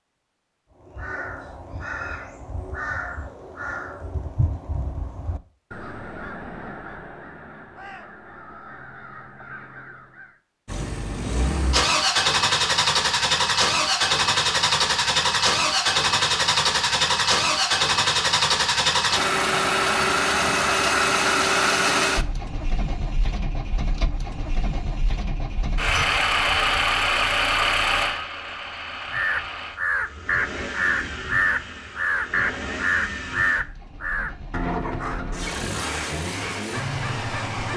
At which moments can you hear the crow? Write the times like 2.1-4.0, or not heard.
0.8-10.4, 29.1-37.7.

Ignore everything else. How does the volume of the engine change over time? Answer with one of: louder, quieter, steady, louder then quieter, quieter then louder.
quieter.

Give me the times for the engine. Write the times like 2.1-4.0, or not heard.
10.7-37.7.